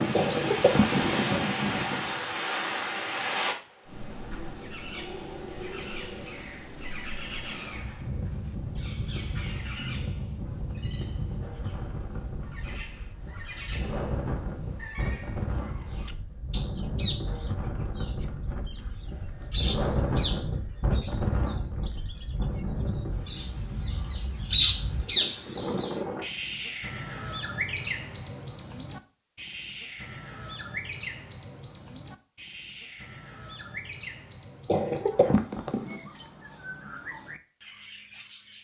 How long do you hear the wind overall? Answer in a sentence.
You can hear the wind for 26 seconds altogether.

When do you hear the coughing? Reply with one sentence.
You can hear the coughing from 0.1 to 1.4 s and from 34.6 to 36.1 s.